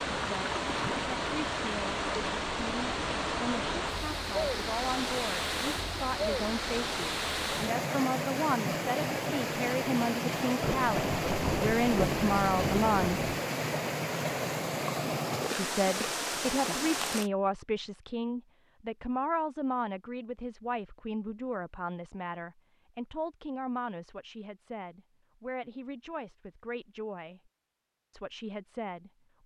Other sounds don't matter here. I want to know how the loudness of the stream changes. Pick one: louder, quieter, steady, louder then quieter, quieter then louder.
steady.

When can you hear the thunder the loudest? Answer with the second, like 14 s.
12 s.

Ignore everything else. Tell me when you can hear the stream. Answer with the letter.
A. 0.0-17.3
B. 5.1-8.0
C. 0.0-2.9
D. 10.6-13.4
A.